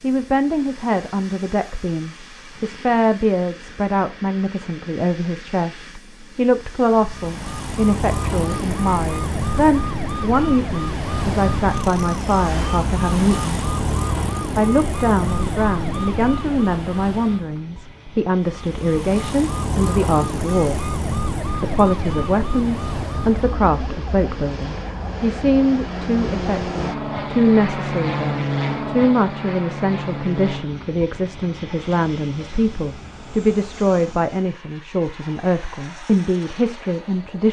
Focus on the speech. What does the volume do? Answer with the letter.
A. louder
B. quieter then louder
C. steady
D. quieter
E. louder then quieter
C.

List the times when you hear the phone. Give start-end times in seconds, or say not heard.
not heard.